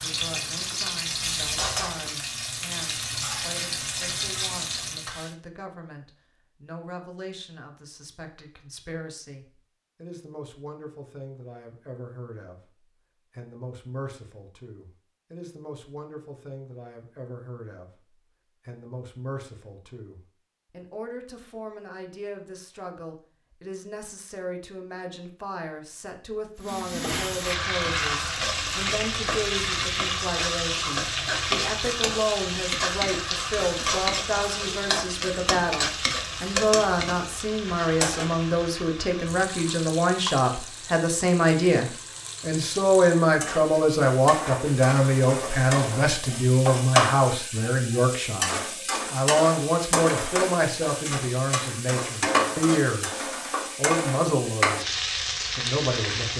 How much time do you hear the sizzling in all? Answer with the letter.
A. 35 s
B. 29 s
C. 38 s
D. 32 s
A.